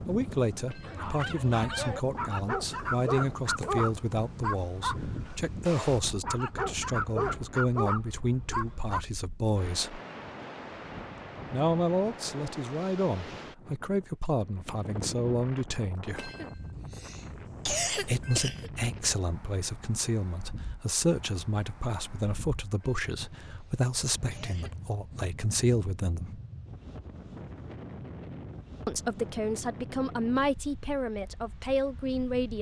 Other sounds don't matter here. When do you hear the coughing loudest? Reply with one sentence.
The loudest moment of the coughing is at 18 seconds.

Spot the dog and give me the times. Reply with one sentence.
You can hear the dog from 0.8 to 9.0 s.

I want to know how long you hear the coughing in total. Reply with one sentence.
You can hear the coughing for 5 seconds altogether.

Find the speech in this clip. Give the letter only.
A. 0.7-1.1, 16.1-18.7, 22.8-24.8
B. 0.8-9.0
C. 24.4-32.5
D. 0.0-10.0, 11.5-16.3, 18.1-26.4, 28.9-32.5
D.